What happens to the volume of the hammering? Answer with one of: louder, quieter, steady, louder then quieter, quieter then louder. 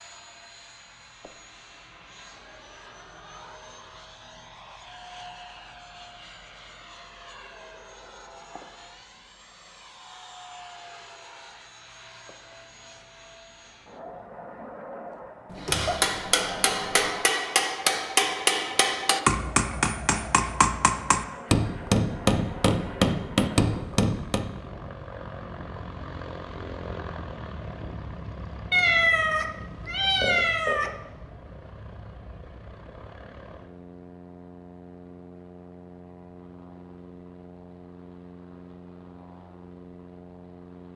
steady.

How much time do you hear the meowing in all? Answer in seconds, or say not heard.
4 s.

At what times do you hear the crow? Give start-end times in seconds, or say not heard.
not heard.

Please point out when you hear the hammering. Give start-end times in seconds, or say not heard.
15.7-24.5.